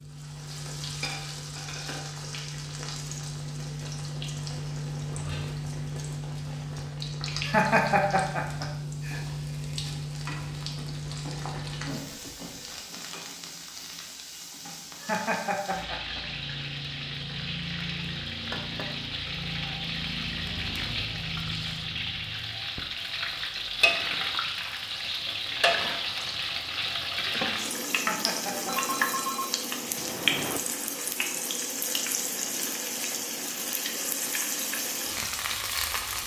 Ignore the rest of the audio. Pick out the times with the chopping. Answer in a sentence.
You can't hear the chopping here.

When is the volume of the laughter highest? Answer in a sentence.
The volume of the laughter peaks at 8 seconds.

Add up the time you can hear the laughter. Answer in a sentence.
You can hear the laughter for 4 seconds altogether.